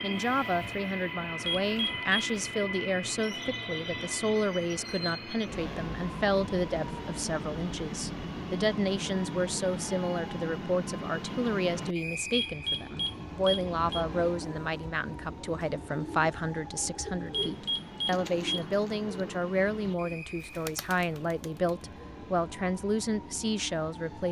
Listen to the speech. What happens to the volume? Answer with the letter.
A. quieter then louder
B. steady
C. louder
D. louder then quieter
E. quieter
B.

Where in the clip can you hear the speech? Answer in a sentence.
The speech can be heard from 0.0 to 24.2 s.